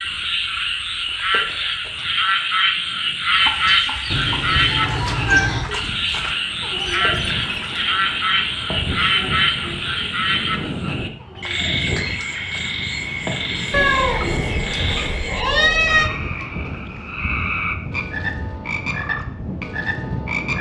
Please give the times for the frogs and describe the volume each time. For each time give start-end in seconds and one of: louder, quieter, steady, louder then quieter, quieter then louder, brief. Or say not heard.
0.0-20.5 quieter.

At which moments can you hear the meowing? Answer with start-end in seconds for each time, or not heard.
4.1-5.7, 13.7-16.1.